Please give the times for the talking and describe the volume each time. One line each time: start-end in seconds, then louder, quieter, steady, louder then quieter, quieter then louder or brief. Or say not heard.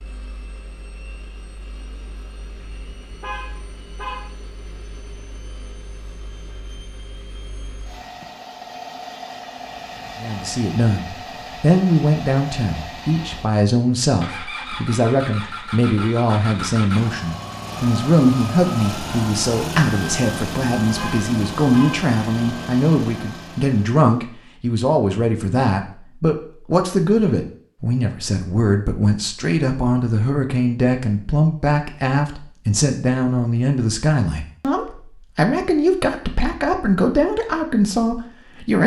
10.2-38.8 steady.